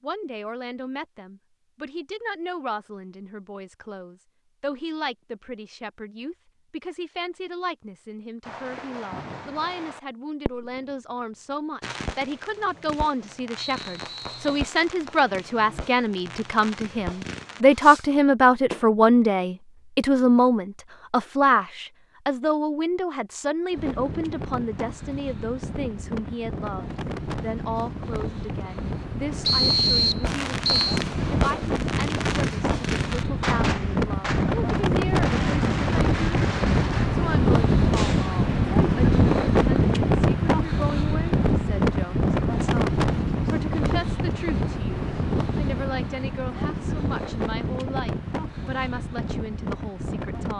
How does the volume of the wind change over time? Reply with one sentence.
The loudness of the wind goes up, then down.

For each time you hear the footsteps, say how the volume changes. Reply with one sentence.
You can't hear the footsteps here.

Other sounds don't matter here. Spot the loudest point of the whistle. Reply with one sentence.
The volume of the whistle peaks at 30 seconds.